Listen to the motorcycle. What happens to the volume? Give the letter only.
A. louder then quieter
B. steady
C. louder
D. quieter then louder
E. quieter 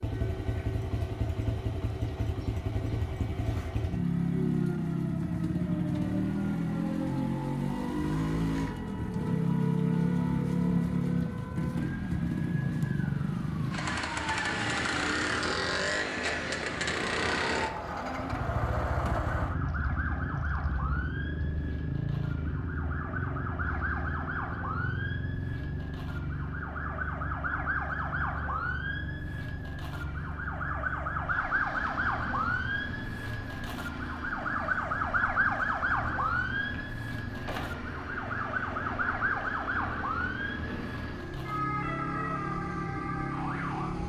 E.